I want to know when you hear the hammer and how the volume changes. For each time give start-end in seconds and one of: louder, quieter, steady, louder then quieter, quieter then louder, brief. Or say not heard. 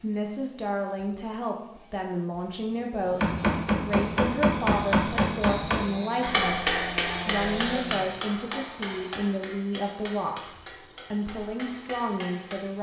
3.1-12.7 quieter.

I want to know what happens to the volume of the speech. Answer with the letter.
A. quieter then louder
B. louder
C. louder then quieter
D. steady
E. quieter
D.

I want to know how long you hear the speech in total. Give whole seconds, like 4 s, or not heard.
13 s.